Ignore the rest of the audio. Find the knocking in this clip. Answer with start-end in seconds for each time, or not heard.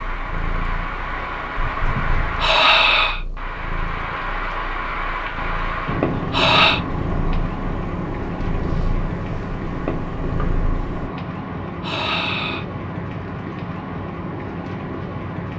1.6-2.5.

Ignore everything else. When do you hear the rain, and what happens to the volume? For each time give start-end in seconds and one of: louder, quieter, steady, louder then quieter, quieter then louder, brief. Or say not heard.
0.0-15.5 steady.